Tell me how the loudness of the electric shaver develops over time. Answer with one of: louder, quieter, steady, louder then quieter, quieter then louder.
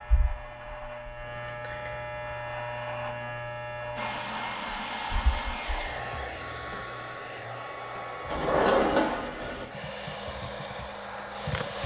quieter.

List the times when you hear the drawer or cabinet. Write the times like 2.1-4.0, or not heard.
8.2-9.7.